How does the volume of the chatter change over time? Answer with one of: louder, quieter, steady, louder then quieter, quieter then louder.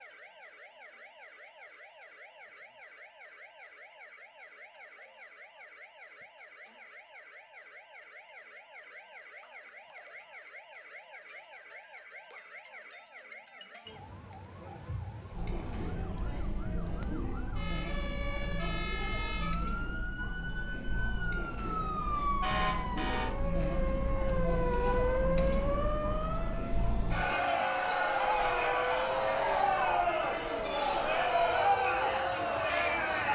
louder.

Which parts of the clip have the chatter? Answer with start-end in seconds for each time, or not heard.
15.3-33.2.